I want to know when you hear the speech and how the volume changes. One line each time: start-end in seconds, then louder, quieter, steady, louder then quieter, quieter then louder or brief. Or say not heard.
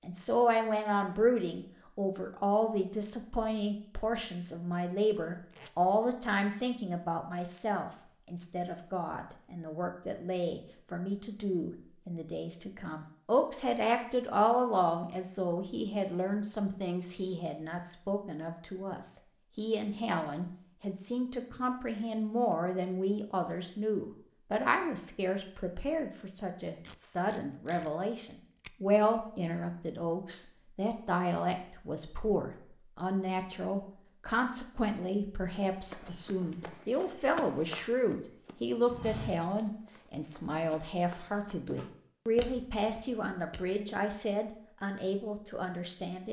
0.0-46.2 steady.